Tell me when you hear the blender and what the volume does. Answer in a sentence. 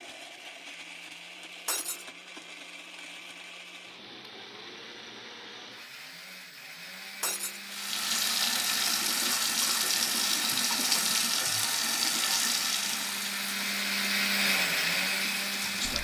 The blender can be heard from 0.0 to 15.9 s, getting louder.